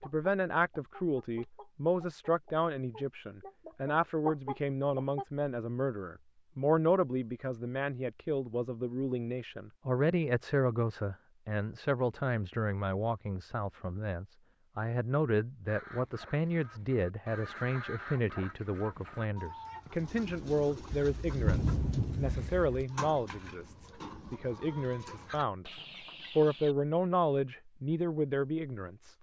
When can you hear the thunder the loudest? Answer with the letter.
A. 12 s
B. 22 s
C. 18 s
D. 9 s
B.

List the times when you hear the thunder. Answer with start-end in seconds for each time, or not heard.
20.9-22.9.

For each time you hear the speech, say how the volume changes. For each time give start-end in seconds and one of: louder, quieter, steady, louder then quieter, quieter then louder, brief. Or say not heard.
0.1-25.7 steady
26.3-29.1 brief.